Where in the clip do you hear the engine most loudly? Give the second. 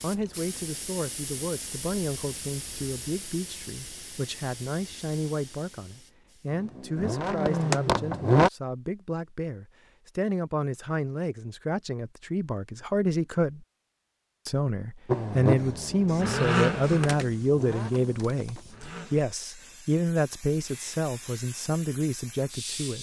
8 s.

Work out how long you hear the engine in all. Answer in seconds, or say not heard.
6 s.